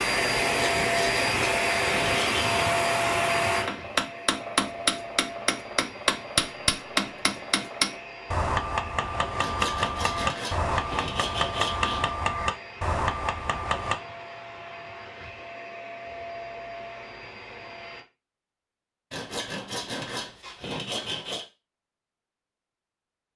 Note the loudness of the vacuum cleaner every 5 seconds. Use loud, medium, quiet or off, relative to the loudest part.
loud, quiet, quiet, quiet, off.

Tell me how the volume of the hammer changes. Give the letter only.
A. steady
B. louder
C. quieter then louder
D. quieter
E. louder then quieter
A.